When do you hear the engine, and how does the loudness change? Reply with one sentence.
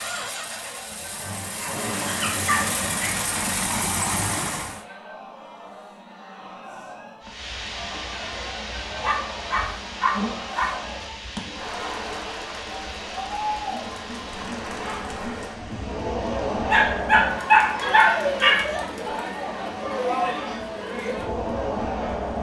You can hear the engine from 0.0 to 4.8 s, getting louder.